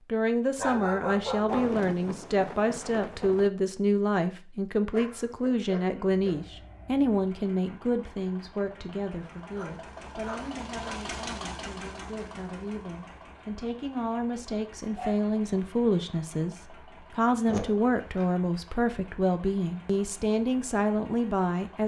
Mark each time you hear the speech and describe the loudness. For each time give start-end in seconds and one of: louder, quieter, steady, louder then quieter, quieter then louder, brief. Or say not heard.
0.1-21.8 quieter then louder.